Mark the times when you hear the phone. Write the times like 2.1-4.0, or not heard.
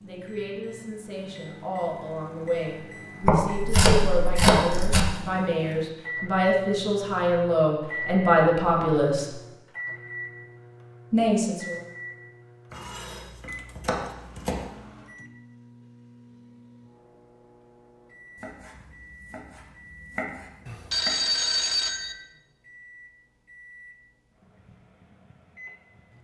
20.6-22.1.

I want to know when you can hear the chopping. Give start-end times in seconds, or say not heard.
3.2-5.0, 12.7-14.7, 18.4-21.1.